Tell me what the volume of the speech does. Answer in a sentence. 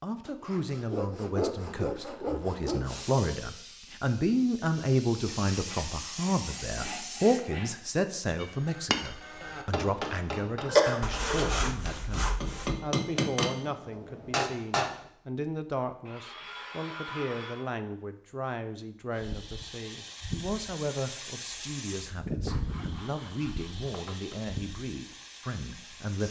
The loudness of the speech goes down.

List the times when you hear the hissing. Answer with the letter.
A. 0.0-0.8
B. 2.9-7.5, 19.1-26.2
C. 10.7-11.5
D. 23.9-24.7
B.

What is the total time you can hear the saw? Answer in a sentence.
You can hear the saw for 11 seconds altogether.